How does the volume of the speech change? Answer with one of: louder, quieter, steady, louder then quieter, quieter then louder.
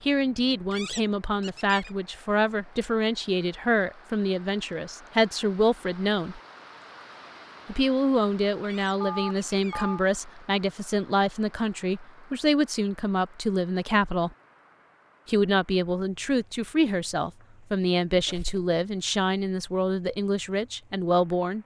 steady.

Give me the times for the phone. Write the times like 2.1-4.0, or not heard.
9.0-10.1.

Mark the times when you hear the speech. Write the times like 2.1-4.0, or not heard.
0.0-6.4, 7.7-14.3, 15.2-21.6.